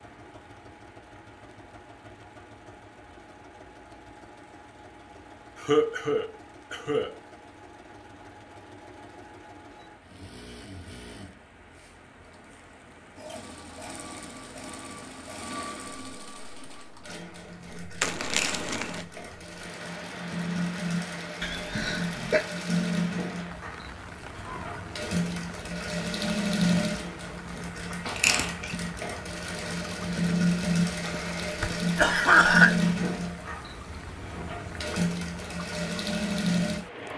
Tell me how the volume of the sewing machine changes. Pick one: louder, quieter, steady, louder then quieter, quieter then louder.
louder.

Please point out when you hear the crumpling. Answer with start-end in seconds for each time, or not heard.
18.0-19.1.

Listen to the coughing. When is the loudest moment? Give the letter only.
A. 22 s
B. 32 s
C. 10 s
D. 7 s
B.